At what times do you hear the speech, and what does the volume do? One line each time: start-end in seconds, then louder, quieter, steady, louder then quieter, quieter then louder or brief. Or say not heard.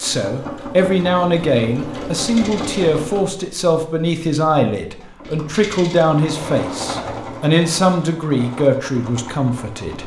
0.0-10.0 steady.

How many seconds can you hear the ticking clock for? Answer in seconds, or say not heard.
not heard.